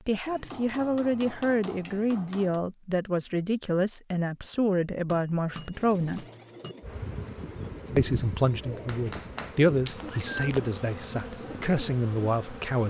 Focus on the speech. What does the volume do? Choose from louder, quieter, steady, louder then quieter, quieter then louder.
steady.